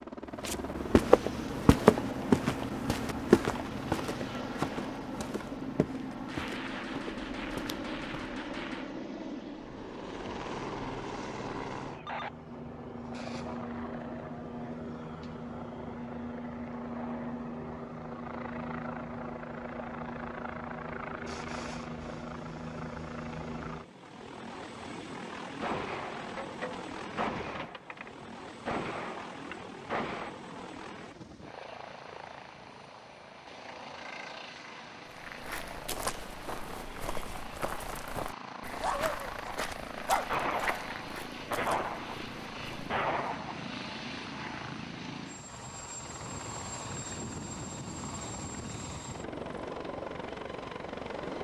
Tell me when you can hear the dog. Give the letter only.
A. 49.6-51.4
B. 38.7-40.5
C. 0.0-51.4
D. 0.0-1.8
B.